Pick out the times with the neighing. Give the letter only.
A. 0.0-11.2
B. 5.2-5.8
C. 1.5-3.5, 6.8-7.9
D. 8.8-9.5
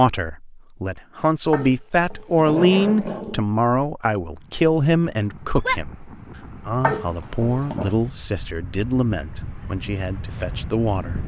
B.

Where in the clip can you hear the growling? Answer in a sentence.
The growling can be heard from 1.5 to 3.5 s and from 6.8 to 7.9 s.